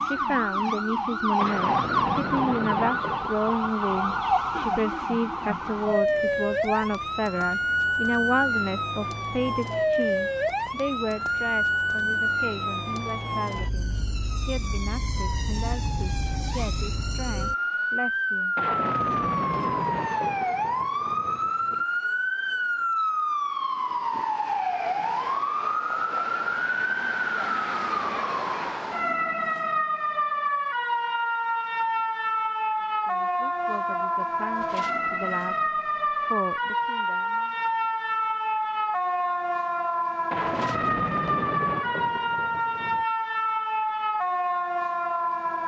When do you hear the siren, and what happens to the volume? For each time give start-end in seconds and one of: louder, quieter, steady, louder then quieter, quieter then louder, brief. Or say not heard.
0.0-45.6 steady.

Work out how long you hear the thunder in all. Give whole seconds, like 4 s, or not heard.
9 s.